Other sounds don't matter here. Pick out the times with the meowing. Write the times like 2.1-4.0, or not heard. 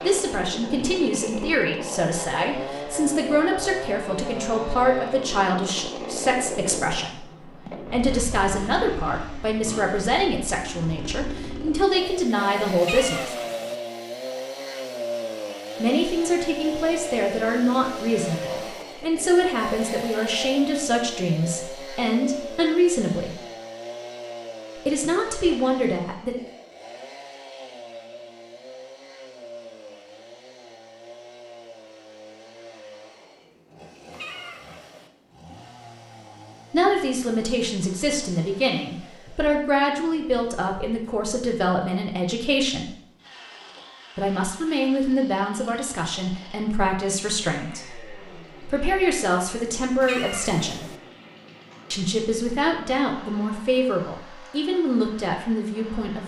12.8-13.8, 34.1-35.1, 50.0-51.0.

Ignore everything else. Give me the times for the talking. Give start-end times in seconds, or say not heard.
0.0-13.3, 15.8-23.4, 24.8-26.4, 36.7-43.0, 44.1-50.9, 51.9-56.2.